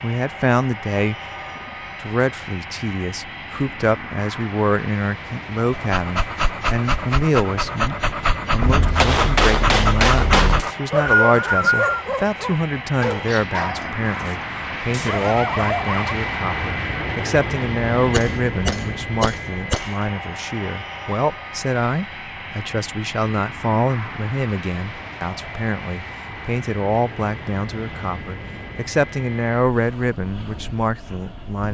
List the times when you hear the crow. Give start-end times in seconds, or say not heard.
not heard.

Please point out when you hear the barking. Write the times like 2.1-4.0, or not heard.
5.7-16.1.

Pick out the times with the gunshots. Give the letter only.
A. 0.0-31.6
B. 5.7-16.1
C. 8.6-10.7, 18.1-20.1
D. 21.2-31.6
C.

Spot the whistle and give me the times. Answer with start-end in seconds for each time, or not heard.
10.6-12.0.